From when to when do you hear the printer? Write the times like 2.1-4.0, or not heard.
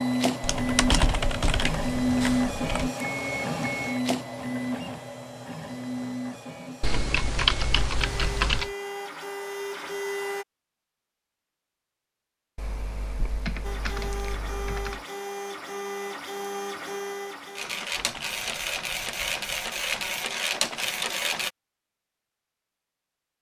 0.0-10.4, 13.6-21.5.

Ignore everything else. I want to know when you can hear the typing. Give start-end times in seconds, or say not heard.
0.4-2.9, 6.8-8.7, 12.6-15.1, 17.9-20.1.